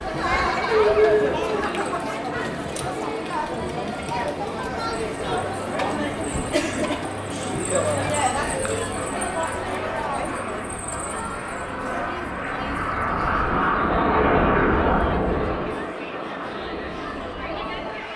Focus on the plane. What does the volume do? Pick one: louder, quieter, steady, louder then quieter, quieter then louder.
louder then quieter.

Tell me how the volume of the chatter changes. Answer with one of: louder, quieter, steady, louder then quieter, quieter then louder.
quieter.